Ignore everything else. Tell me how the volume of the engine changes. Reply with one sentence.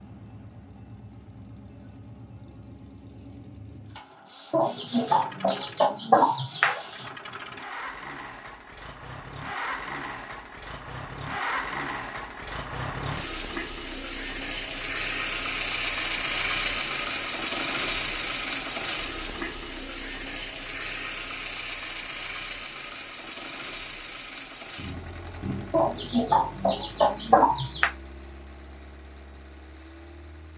The volume of the engine goes up, then down.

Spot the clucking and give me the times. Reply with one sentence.
The clucking can be heard from 4.5 to 6.8 s and from 25.7 to 27.9 s.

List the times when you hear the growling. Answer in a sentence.
You can hear the growling from 24.8 to 25.8 s.